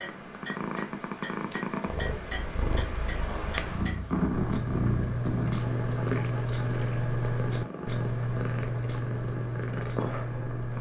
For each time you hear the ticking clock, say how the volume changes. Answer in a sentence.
You can hear the ticking clock from 0.0 to 10.7 s, getting louder.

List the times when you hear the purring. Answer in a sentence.
You can hear the purring from 0.0 to 10.7 s.